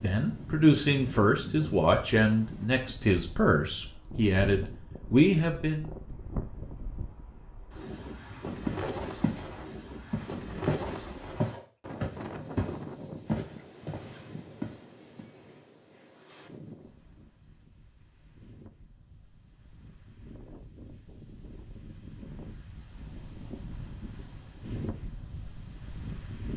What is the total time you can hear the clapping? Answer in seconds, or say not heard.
not heard.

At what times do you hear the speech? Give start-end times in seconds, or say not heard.
0.0-5.8.